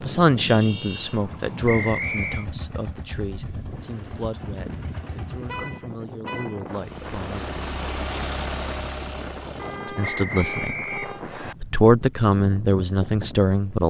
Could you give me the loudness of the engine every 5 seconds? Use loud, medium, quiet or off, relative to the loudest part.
medium, loud, off.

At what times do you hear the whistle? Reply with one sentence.
The whistle can be heard from 1.6 to 2.5 s and from 10.0 to 11.6 s.